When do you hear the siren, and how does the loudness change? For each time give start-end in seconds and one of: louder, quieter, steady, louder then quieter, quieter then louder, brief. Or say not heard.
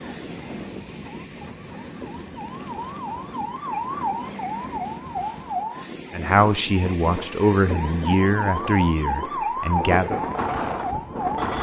0.0-11.5 louder.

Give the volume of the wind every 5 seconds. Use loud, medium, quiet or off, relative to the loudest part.
medium, medium, loud.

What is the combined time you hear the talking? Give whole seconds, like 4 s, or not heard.
4 s.